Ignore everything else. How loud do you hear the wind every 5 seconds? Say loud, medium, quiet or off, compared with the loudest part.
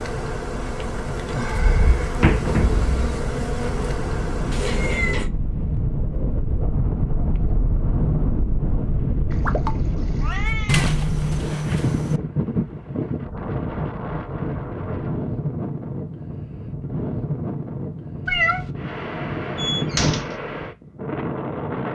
medium, loud, loud, loud, loud.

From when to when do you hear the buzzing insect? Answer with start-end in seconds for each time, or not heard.
0.0-5.2.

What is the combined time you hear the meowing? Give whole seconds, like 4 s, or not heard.
3 s.